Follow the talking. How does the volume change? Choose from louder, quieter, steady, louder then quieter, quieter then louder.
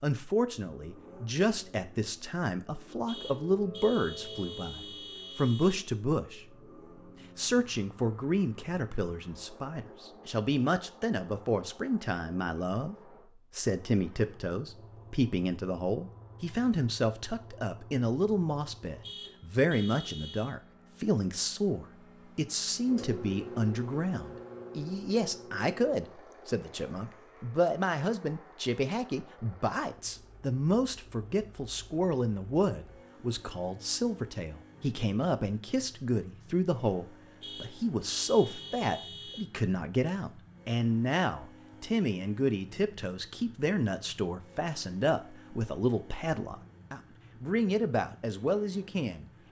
steady.